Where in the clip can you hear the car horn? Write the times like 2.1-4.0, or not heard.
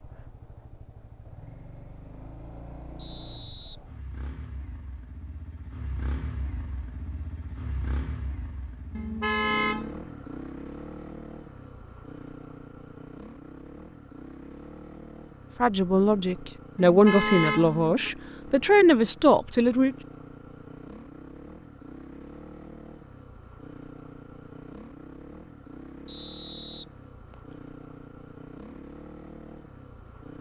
8.9-10.0, 16.8-18.1.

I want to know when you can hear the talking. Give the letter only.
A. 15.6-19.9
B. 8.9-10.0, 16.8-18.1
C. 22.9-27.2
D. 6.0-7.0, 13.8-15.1
A.